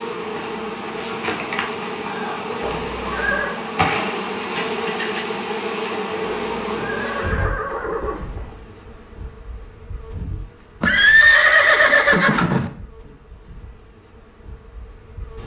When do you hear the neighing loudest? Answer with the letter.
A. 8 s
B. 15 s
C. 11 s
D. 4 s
C.